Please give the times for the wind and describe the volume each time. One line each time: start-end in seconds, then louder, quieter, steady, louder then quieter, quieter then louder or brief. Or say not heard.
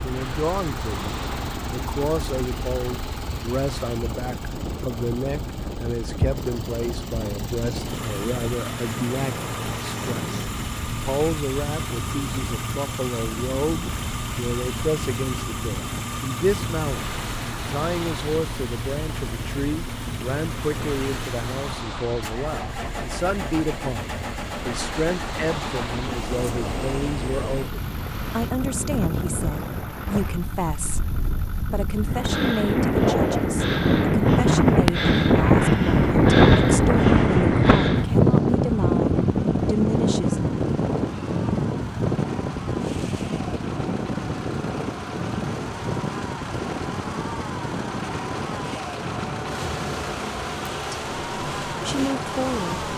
0.0-52.9 louder then quieter.